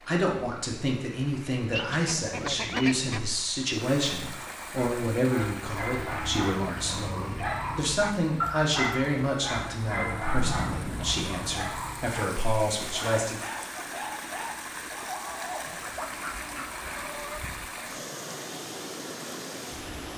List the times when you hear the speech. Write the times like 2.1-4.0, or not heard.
0.0-13.4.